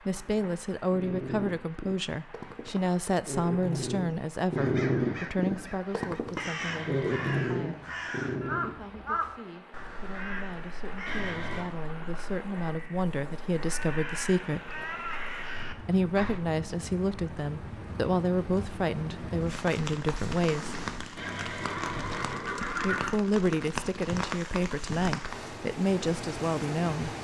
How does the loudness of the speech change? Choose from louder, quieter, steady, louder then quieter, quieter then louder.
quieter then louder.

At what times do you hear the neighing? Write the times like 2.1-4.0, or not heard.
6.5-7.5, 11.1-11.7, 21.1-23.2.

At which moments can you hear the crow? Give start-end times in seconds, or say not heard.
4.5-16.4.